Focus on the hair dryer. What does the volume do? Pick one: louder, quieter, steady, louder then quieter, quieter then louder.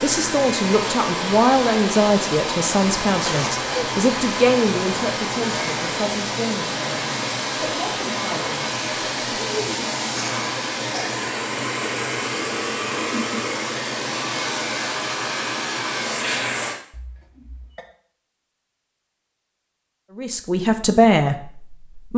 steady.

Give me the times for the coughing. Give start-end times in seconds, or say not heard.
3.0-3.9, 10.2-11.2, 16.9-17.9.